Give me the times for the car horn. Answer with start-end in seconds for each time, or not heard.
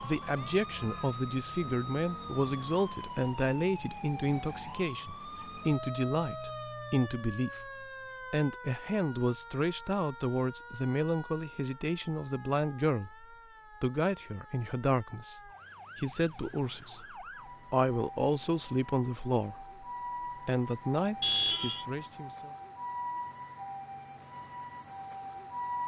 21.2-21.9.